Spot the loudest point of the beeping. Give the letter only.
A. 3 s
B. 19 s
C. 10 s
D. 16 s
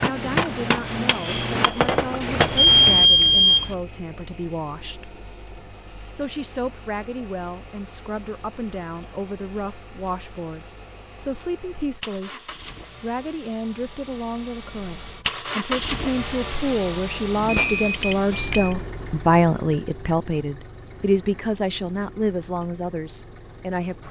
A.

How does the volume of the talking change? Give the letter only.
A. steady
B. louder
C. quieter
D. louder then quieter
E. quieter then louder
B.